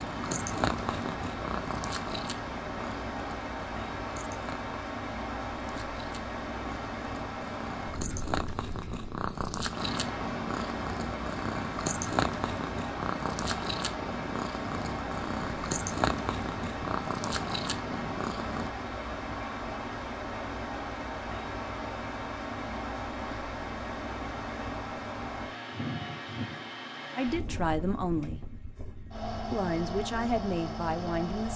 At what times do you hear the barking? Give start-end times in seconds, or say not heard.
not heard.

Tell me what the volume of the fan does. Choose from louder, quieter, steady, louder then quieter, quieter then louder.
steady.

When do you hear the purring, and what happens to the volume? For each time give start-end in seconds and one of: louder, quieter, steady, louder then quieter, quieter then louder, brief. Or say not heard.
0.0-18.7 quieter then louder.